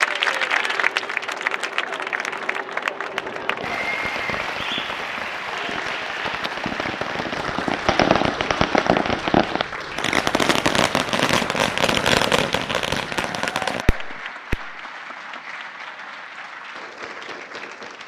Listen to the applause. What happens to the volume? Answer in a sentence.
The loudness of the applause goes down.